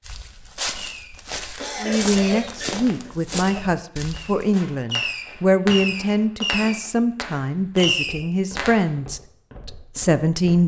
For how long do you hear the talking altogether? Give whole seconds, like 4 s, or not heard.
9 s.